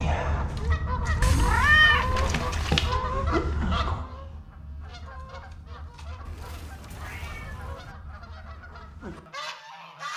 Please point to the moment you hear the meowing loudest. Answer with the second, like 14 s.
2 s.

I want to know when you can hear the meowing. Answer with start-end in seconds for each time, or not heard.
1.2-2.9, 6.2-8.0.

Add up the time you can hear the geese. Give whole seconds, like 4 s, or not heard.
10 s.